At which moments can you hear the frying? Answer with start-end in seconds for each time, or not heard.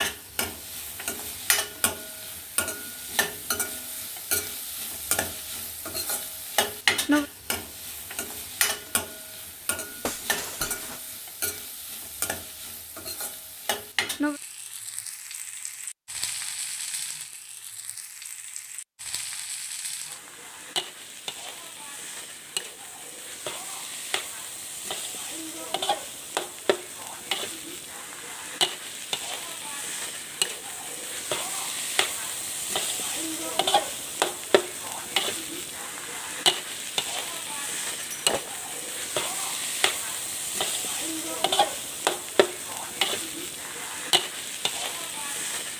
0.0-45.7.